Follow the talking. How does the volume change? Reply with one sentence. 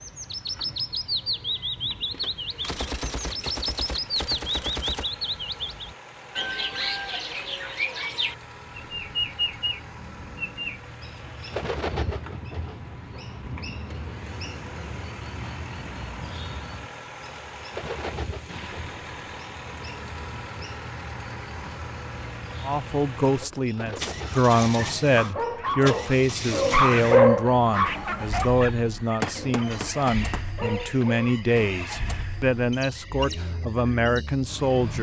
The loudness of the talking stays about the same.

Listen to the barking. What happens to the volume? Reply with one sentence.
The loudness of the barking goes up, then down.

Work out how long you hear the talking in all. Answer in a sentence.
You can hear the talking for 12 seconds altogether.